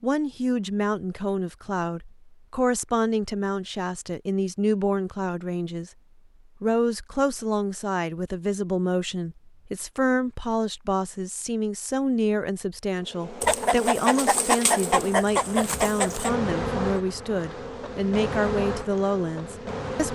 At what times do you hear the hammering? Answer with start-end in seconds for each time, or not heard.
not heard.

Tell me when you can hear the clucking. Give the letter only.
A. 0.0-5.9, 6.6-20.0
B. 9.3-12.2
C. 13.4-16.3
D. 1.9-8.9
C.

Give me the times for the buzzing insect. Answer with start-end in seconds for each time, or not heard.
12.9-20.0.